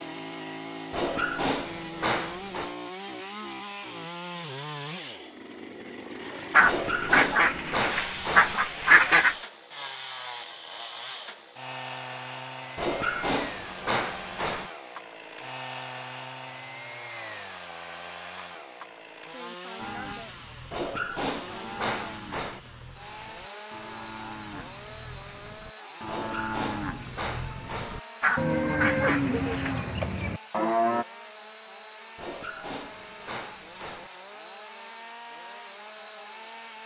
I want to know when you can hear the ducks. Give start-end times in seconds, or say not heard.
6.5-9.3, 28.2-29.8.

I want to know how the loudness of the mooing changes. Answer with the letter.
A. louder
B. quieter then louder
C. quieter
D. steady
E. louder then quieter
A.